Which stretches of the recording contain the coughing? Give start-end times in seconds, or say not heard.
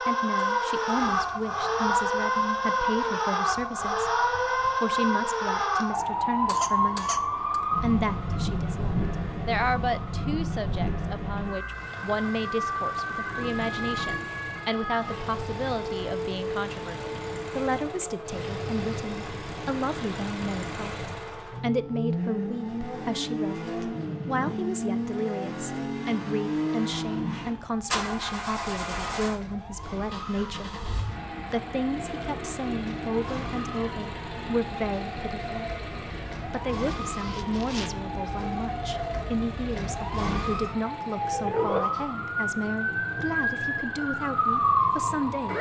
6.5-7.6, 36.9-38.4.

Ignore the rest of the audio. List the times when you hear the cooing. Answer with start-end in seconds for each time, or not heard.
not heard.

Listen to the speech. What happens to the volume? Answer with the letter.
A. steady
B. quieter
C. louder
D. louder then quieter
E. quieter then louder
A.